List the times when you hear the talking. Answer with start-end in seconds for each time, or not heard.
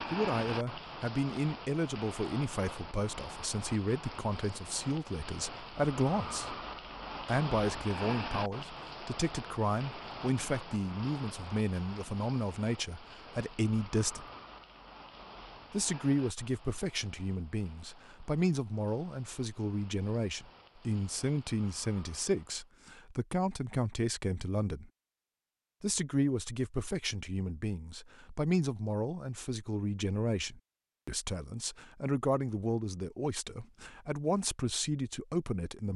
0.1-6.5, 7.2-14.2, 15.7-24.9, 25.8-35.9.